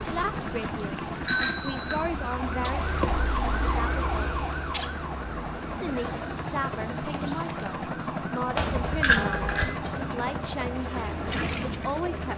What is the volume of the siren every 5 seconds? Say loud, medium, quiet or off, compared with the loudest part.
loud, medium, medium.